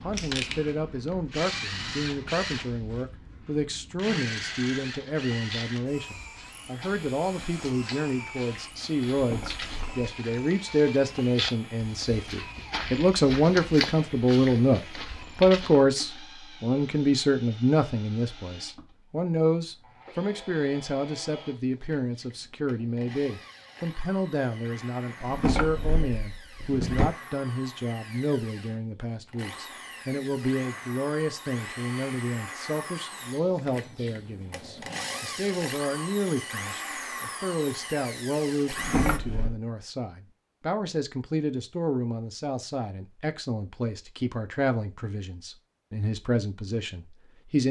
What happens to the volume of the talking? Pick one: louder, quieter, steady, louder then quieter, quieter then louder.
louder then quieter.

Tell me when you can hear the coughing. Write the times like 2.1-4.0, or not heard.
not heard.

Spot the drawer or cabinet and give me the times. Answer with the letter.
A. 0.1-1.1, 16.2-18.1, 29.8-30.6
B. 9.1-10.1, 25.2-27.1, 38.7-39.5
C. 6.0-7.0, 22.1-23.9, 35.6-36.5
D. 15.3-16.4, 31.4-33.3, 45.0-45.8
B.